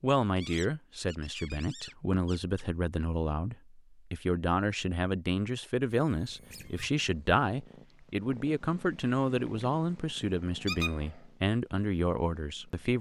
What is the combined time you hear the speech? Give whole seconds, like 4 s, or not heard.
13 s.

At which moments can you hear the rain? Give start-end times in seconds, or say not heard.
not heard.